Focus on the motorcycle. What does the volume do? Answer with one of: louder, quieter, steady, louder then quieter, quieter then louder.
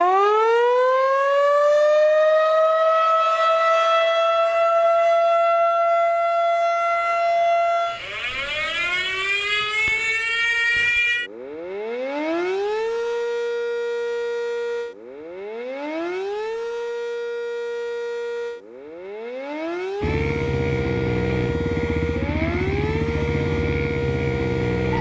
steady.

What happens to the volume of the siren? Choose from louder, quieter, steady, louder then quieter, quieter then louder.
quieter.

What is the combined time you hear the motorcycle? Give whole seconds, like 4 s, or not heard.
5 s.